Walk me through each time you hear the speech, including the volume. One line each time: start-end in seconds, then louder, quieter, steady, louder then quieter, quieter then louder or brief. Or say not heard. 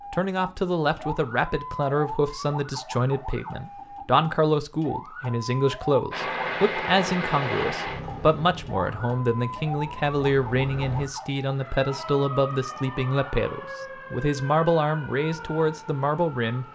0.1-16.6 steady.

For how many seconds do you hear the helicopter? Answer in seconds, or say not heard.
5 s.